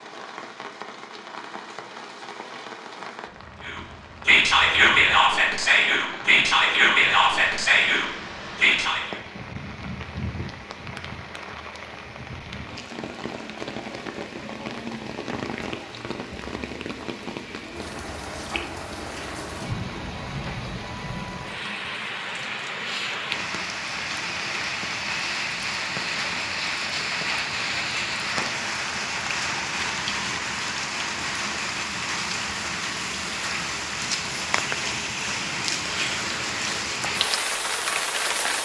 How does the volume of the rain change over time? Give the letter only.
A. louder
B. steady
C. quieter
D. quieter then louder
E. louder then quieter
A.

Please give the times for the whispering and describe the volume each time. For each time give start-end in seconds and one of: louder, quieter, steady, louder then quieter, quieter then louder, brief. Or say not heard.
3.6-9.2 steady.